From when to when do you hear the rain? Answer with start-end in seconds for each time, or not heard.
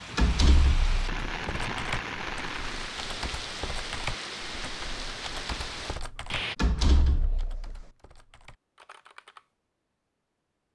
0.0-6.5.